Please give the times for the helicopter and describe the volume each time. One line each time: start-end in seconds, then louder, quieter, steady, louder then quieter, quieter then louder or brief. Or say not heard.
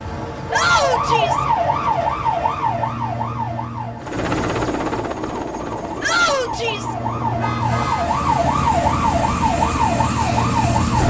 4.0-11.0 quieter then louder.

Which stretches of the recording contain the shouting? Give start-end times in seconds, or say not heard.
0.5-1.4, 6.0-7.0.